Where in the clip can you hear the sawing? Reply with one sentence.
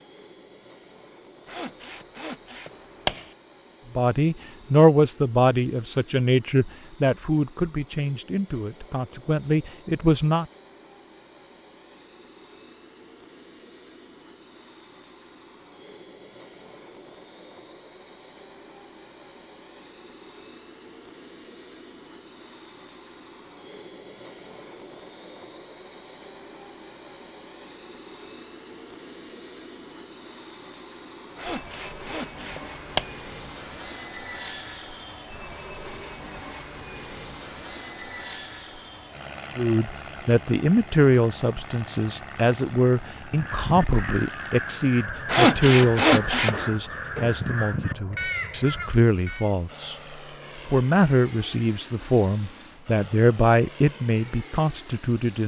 The sawing can be heard from 1.5 to 3.2 s, from 31.4 to 33.0 s and from 45.2 to 46.7 s.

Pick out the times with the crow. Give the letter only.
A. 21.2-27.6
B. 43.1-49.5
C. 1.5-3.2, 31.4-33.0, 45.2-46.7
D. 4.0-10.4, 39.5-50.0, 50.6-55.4
B.